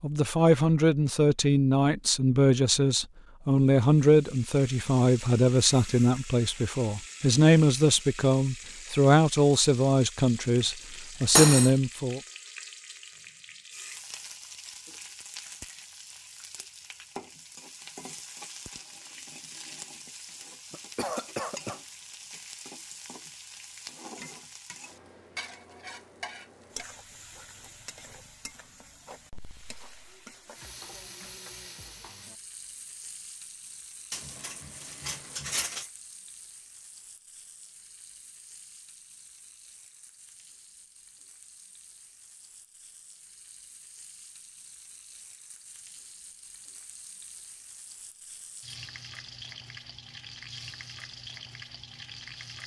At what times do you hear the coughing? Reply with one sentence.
The coughing can be heard from 20.7 to 21.8 s.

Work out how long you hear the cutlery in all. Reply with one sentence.
You can hear the cutlery for 2 seconds altogether.